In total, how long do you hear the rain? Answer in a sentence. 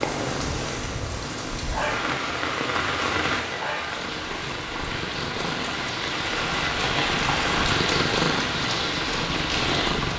You can hear the rain for 10 seconds altogether.